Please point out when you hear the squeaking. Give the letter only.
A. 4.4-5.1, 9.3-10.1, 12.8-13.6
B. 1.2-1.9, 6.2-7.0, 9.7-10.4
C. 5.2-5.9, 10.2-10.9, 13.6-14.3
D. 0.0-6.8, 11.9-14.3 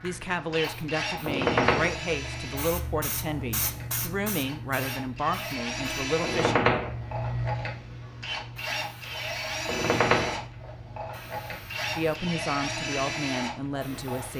B.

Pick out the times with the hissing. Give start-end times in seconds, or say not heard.
0.0-14.3.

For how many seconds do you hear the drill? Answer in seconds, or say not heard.
14 s.